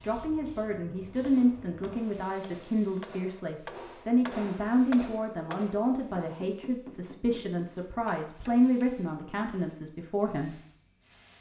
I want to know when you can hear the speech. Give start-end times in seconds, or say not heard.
0.0-10.6.